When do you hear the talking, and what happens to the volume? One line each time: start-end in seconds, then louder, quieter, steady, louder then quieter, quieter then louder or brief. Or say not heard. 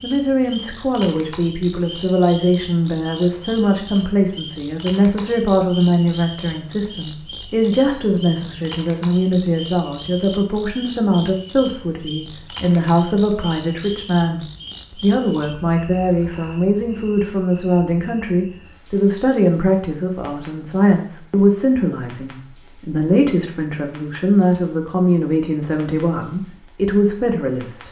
0.0-27.8 steady.